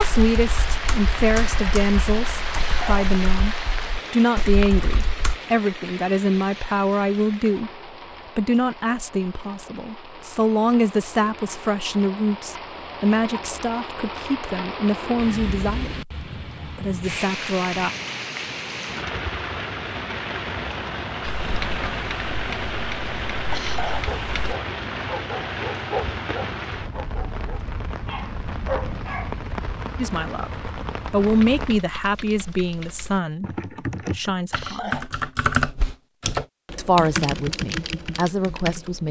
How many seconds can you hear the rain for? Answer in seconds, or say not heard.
32 s.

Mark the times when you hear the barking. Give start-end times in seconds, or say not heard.
24.0-29.4.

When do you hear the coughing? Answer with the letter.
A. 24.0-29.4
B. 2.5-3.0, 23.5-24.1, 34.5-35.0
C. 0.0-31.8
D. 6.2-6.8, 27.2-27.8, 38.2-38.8
B.